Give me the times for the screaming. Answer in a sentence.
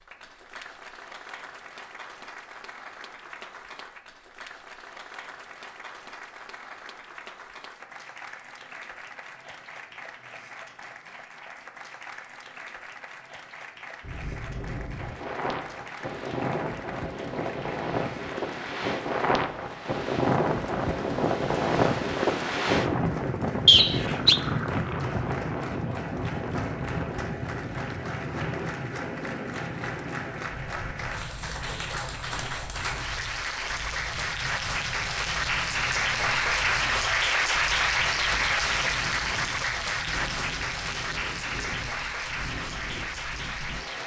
The screaming can't be heard in this clip.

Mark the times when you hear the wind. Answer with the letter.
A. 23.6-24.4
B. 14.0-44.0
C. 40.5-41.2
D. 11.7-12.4
B.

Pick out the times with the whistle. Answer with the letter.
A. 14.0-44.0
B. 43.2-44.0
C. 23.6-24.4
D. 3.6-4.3
C.